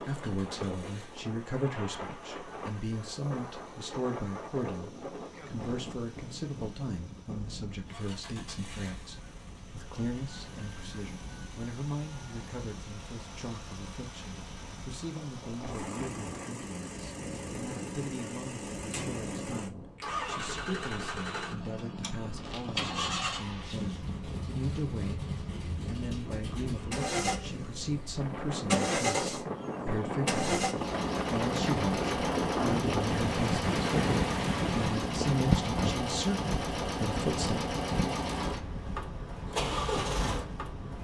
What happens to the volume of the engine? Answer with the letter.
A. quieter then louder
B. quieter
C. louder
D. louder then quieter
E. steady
C.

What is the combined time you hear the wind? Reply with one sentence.
You can hear the wind for 41 seconds altogether.